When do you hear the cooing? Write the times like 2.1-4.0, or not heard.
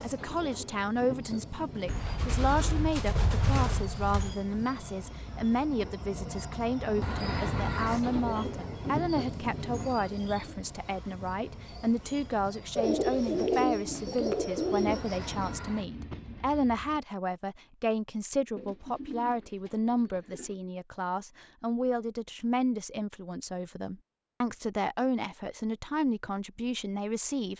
1.9-4.3, 12.8-15.6, 18.6-20.6.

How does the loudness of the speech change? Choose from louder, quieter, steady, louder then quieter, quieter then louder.
steady.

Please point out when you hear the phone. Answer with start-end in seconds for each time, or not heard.
not heard.